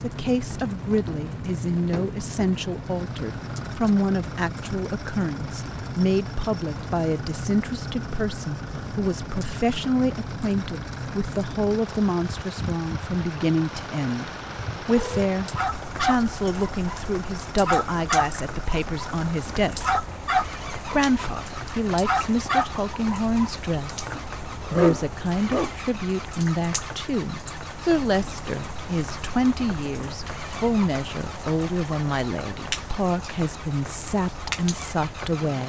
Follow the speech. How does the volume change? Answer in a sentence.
The loudness of the speech stays about the same.